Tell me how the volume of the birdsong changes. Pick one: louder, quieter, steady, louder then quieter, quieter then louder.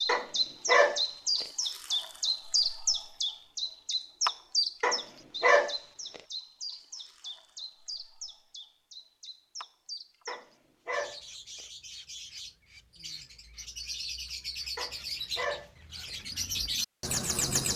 quieter then louder.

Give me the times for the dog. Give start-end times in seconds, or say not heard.
0.1-1.4, 4.8-6.2, 10.2-11.2, 14.8-16.1.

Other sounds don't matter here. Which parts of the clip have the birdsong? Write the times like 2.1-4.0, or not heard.
0.0-17.7.